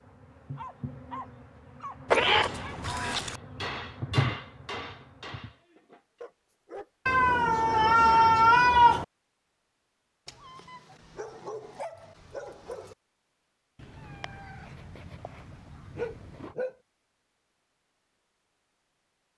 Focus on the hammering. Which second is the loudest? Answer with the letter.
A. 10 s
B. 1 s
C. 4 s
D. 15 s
C.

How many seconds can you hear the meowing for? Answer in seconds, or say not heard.
6 s.